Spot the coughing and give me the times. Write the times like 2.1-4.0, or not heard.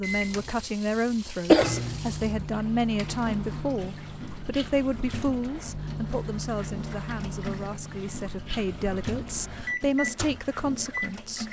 1.5-2.4.